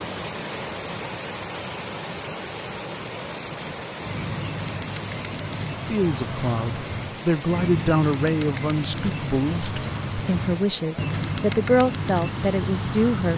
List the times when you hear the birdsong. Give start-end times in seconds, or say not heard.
4.0-13.3.